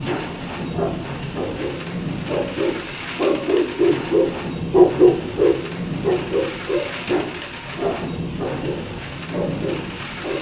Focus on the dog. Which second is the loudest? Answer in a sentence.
The volume of the dog peaks at 5 seconds.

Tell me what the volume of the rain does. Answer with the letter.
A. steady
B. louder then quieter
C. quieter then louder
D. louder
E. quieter
A.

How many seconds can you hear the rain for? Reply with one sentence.
You can hear the rain for 10 seconds altogether.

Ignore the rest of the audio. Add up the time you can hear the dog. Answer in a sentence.
You can hear the dog for 10 seconds altogether.